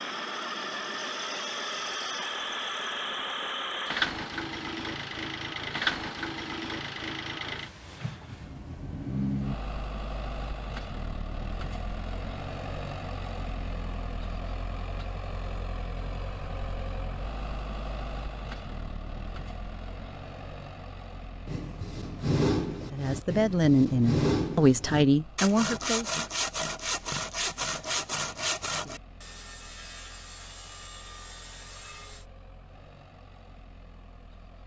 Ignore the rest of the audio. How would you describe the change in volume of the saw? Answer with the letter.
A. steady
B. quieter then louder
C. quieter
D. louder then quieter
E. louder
C.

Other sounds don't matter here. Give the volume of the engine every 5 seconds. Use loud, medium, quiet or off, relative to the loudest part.
loud, loud, medium, medium, quiet, quiet, quiet.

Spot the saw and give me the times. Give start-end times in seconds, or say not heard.
21.4-32.2.